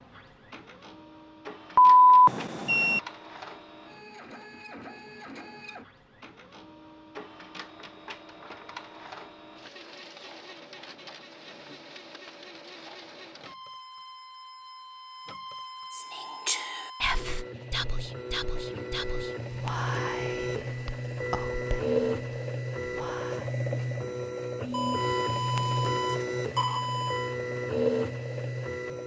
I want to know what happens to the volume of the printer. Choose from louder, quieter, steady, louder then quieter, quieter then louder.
louder.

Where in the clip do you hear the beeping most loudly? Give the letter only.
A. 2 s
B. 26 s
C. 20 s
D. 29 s
A.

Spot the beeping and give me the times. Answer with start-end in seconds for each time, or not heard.
1.8-3.0, 24.7-27.4.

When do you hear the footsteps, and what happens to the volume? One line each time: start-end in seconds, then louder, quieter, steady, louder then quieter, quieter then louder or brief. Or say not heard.
not heard.